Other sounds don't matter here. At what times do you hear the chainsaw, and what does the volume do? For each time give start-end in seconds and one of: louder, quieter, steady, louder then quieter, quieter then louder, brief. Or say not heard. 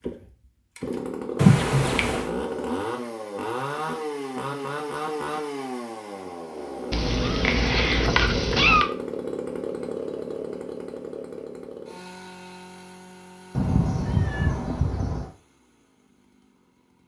0.0-17.0 quieter.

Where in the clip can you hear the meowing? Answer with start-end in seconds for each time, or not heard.
1.4-2.3, 6.9-8.9, 13.6-15.3.